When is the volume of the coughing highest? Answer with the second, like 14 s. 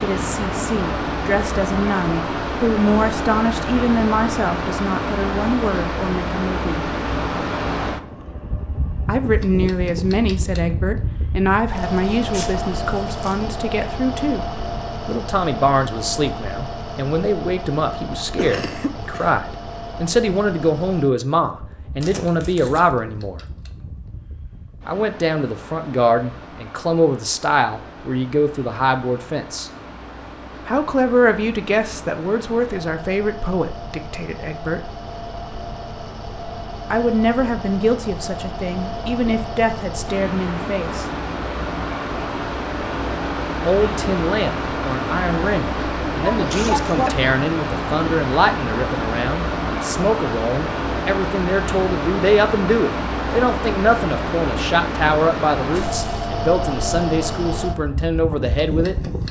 47 s.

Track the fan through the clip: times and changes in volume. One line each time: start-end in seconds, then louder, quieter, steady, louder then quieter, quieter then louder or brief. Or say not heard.
0.0-59.2 quieter then louder.